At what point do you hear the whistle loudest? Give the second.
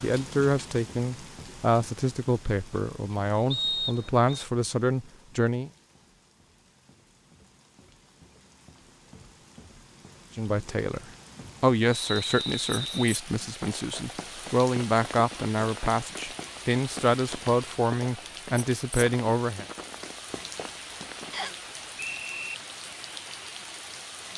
4 s.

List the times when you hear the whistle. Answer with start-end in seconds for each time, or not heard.
3.5-4.5, 11.9-13.2, 21.3-22.6.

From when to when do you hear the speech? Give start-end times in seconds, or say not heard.
0.0-5.7, 10.3-11.0, 11.6-19.6.